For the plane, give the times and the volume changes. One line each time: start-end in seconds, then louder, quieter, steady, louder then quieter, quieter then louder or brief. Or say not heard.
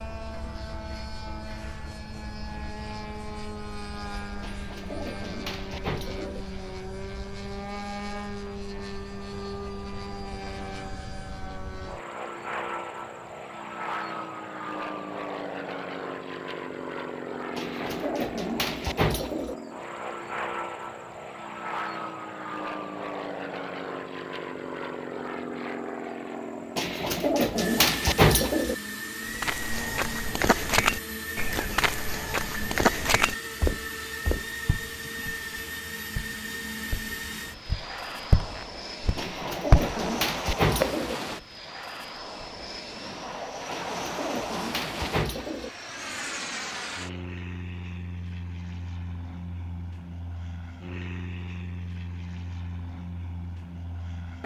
0.0-54.4 steady.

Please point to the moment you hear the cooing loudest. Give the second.
28 s.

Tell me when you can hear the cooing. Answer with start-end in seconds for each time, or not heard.
4.4-6.5, 17.6-19.6, 26.8-28.8, 39.1-41.2, 43.7-45.7.